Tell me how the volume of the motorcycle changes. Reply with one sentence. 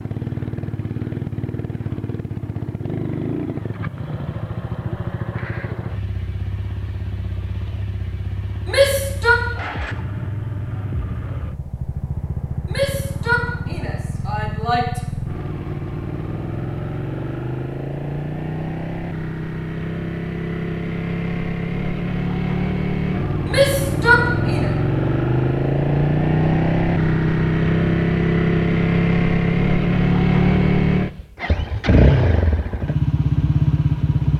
The loudness of the motorcycle goes up.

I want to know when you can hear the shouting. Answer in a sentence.
You can hear the shouting from 8.7 to 9.3 s, from 12.7 to 15.0 s and from 23.4 to 24.7 s.